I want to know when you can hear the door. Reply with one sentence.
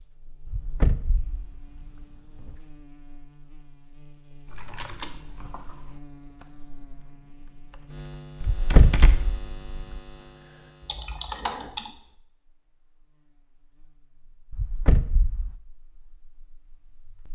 The door can be heard from 0.5 to 2.5 s, from 8.4 to 10.0 s and from 14.5 to 15.6 s.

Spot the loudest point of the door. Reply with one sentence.
The volume of the door peaks at 9 seconds.